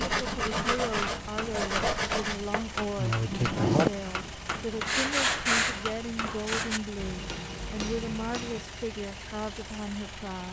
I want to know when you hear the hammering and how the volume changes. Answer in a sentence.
The hammering can be heard from 0.9 to 8.7 s, at a steady volume.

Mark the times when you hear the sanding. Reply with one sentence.
You can hear the sanding from 0.0 to 6.8 s.